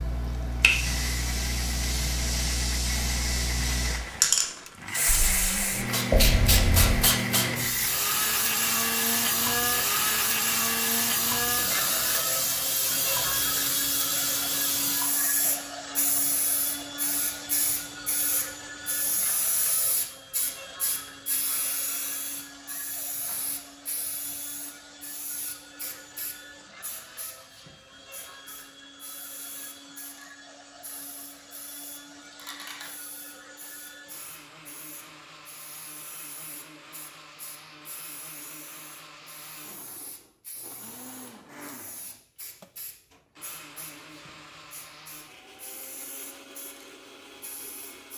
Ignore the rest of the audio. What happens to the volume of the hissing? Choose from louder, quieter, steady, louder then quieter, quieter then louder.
quieter.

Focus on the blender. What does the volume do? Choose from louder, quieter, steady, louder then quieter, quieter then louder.
quieter.